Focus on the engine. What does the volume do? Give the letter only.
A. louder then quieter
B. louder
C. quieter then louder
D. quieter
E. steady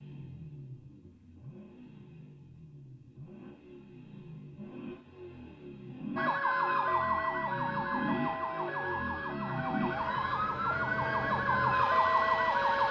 B.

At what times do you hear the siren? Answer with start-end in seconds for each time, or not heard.
6.2-12.8.